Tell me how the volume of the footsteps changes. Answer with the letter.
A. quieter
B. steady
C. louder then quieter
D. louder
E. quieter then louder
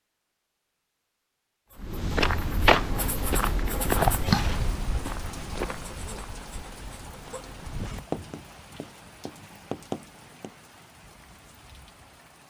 A.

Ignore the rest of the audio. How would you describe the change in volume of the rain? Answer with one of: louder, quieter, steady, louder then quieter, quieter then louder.
quieter.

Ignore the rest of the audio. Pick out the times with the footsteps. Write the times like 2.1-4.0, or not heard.
1.8-8.0.